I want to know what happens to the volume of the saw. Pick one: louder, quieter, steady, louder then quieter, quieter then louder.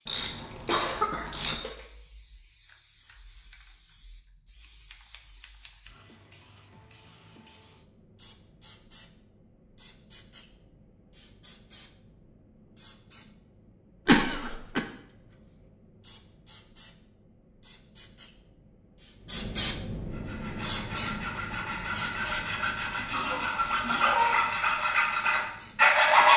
louder.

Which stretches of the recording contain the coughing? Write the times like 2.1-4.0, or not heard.
0.7-1.7, 14.1-14.8, 22.9-24.6.